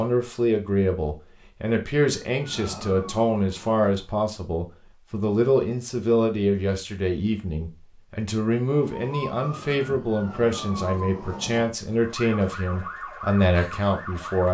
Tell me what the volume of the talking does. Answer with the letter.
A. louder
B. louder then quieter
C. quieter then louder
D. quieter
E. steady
E.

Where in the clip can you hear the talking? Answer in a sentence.
You can hear the talking from 0.0 to 14.4 s.